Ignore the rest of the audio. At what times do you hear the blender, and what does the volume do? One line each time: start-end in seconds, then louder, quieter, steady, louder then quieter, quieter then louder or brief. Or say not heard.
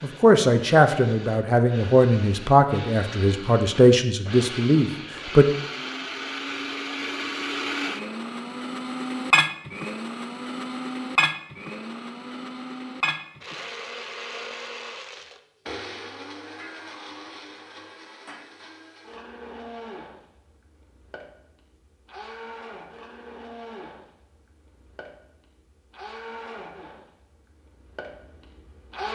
0.0-29.1 louder then quieter.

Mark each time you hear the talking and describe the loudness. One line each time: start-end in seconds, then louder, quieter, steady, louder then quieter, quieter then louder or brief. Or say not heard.
0.0-5.5 steady.